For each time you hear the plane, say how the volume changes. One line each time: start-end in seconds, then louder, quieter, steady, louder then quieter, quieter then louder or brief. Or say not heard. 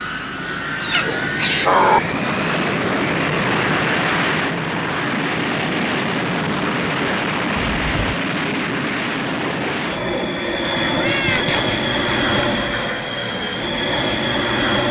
0.0-14.8 steady.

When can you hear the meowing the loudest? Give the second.
2 s.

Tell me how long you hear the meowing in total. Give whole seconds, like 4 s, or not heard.
3 s.